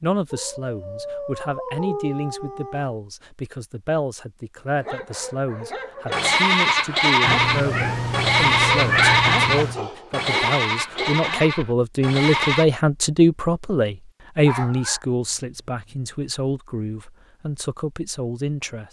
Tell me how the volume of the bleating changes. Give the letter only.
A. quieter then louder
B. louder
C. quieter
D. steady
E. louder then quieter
C.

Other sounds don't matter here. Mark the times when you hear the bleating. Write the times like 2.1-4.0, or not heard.
6.1-12.7.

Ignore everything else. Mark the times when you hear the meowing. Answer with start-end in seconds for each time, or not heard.
7.2-9.8.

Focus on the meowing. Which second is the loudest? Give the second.
9 s.